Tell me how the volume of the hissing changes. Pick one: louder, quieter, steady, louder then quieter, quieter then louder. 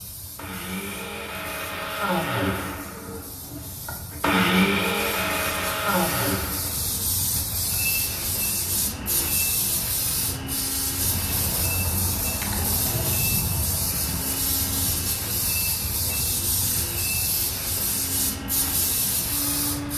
louder.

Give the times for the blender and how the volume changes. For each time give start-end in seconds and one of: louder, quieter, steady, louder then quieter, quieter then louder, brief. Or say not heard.
0.3-19.9 quieter.